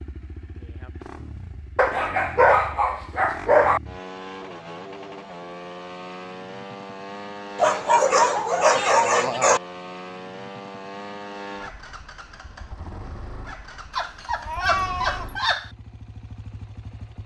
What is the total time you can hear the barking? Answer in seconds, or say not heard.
6 s.